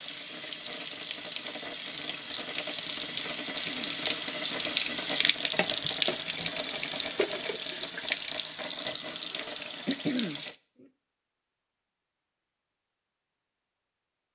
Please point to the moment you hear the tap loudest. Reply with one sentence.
The loudest moment of the tap is at 6 seconds.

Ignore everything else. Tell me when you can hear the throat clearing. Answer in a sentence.
The throat clearing can be heard from 3.5 to 4.0 s and from 9.8 to 10.8 s.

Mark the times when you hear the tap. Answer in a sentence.
The tap can be heard from 0.0 to 10.6 s.